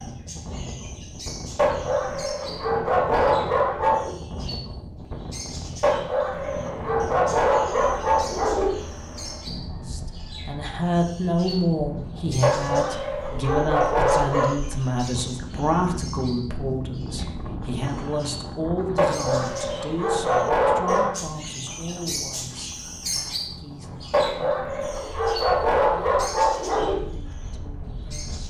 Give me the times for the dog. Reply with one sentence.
The dog can be heard from 1.6 to 4.2 s, from 5.8 to 8.8 s, from 12.4 to 14.5 s, from 18.9 to 21.1 s and from 24.1 to 26.9 s.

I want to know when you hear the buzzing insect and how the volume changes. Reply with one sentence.
You can't hear the buzzing insect here.